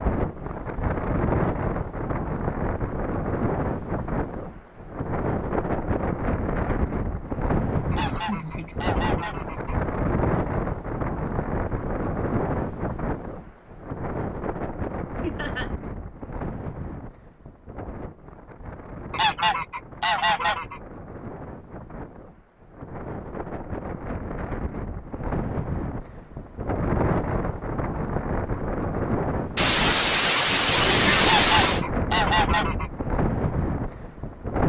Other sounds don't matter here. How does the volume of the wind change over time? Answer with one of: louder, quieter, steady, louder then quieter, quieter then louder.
quieter then louder.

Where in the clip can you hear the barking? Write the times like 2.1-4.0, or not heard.
not heard.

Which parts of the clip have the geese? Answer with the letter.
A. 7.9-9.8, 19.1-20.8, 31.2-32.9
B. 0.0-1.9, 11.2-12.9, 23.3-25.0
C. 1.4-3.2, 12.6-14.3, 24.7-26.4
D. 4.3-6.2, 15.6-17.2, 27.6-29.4
A.